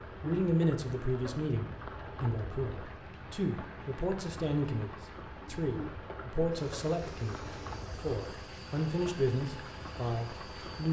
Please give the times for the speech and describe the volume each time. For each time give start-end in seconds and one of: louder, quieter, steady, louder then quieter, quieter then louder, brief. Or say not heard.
0.2-10.8 steady.